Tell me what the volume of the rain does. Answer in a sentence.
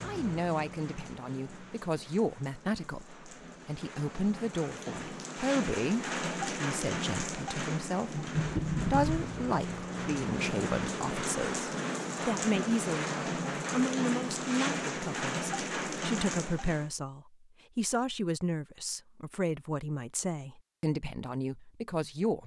The loudness of the rain goes up.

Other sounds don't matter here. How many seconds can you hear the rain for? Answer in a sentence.
The rain can be heard for 17 seconds in total.